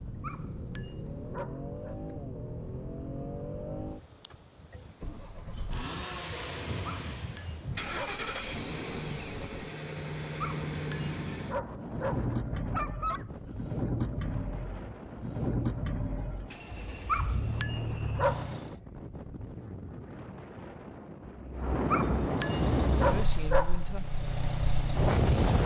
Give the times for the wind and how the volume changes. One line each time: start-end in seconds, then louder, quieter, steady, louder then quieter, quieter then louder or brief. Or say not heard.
0.0-25.6 louder.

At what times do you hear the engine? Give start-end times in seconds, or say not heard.
0.0-18.8, 22.1-25.6.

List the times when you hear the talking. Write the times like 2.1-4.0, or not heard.
23.1-24.2.